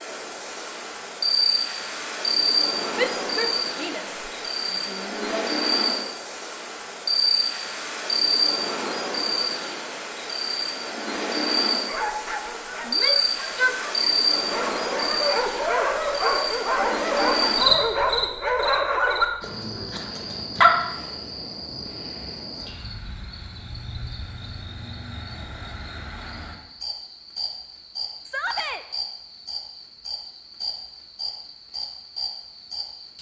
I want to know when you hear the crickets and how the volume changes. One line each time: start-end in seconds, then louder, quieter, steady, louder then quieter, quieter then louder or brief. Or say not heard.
0.0-33.1 quieter.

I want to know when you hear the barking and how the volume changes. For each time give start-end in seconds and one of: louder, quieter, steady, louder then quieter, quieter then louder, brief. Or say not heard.
11.8-20.8 louder.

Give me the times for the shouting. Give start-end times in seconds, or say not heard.
3.0-4.0, 4.8-5.5, 12.8-13.8, 28.2-28.9.